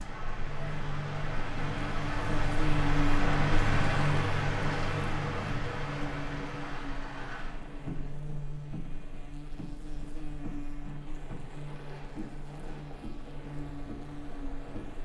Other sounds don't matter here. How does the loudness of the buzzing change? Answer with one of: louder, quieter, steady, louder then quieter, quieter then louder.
quieter.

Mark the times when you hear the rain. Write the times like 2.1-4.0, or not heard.
0.0-15.0.